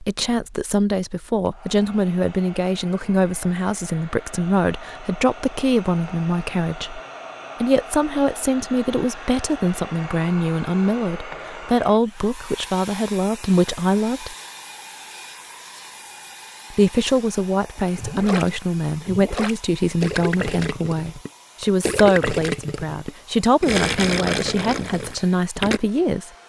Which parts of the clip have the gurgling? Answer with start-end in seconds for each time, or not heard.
17.8-25.8.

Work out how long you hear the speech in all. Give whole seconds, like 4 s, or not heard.
23 s.